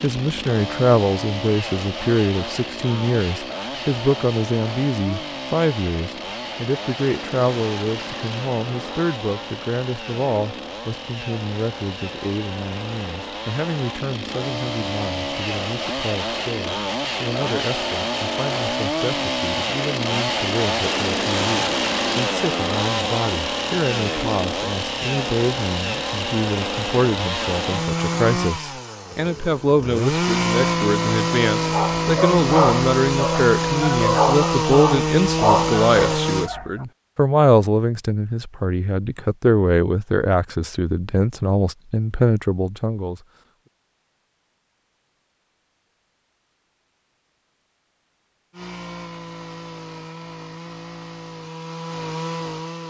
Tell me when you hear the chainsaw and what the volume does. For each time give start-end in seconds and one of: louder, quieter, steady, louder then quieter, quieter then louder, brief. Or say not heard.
0.0-36.5 louder
48.5-52.8 louder.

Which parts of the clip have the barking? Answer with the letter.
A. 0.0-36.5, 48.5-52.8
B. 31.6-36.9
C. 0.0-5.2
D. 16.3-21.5
B.